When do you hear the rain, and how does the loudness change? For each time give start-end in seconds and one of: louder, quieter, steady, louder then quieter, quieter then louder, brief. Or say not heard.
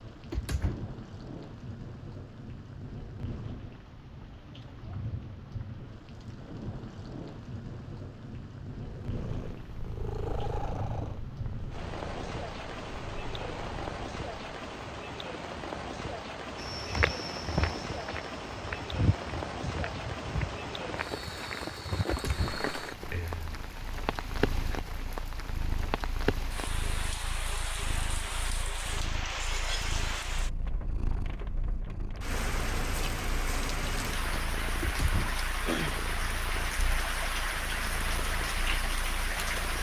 0.0-39.7 louder.